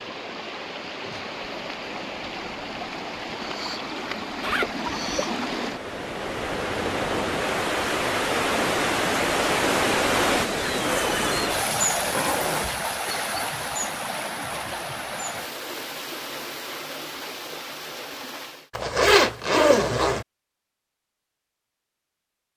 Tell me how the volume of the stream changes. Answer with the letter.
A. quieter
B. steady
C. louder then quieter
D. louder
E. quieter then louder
C.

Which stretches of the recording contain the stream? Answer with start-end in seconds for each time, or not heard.
0.0-18.7.